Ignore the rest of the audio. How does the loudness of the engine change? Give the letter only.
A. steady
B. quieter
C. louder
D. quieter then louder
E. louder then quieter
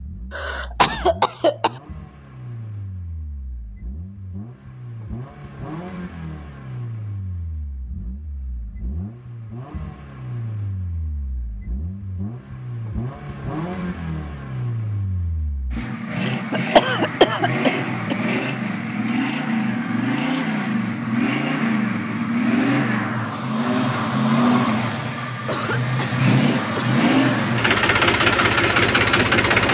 C.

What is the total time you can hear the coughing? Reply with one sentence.
The coughing can be heard for 5 seconds in total.